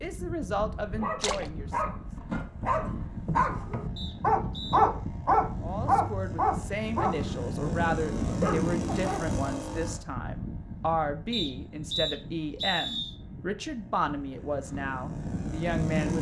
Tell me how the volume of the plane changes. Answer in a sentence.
The loudness of the plane goes up, then down.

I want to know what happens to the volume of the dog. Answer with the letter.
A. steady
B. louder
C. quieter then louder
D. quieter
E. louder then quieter
E.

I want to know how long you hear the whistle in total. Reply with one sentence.
The whistle can be heard for 3 seconds in total.